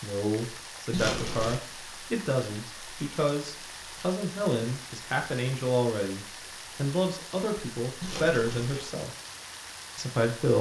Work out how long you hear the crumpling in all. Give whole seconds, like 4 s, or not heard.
2 s.